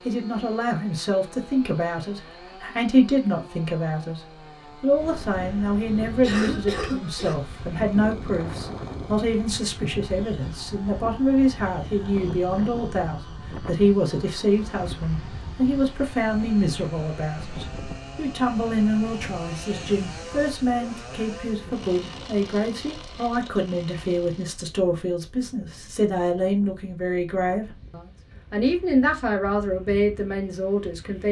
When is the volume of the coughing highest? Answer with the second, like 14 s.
7 s.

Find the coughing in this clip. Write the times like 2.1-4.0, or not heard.
5.4-7.3.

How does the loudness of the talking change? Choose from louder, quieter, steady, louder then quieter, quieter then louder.
steady.